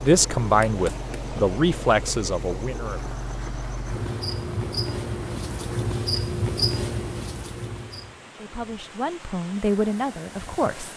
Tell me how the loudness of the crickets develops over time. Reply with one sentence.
The volume of the crickets goes up.